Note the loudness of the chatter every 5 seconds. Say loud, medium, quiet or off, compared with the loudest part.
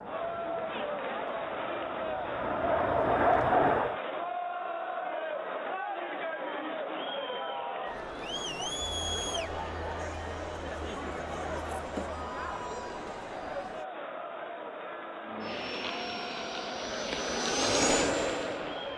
loud, loud, loud, medium.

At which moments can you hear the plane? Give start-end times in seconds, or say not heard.
0.0-4.0, 15.2-18.9.